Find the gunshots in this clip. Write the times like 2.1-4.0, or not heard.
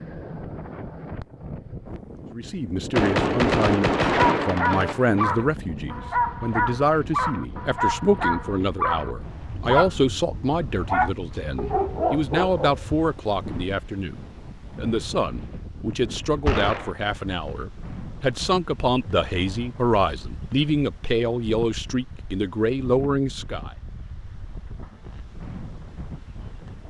2.9-5.0, 16.4-16.9.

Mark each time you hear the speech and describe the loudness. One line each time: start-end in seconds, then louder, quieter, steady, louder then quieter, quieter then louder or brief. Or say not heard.
2.4-23.7 steady.